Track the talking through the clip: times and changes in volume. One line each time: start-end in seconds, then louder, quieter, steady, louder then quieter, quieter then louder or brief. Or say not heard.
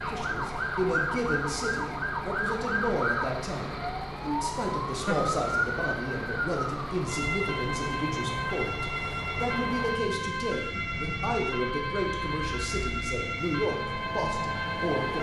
0.0-15.1 steady.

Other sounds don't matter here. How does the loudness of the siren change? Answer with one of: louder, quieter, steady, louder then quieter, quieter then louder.
steady.